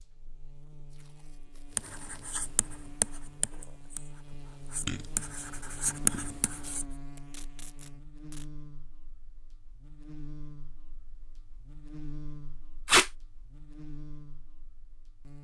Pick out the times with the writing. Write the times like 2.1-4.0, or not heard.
1.8-6.8.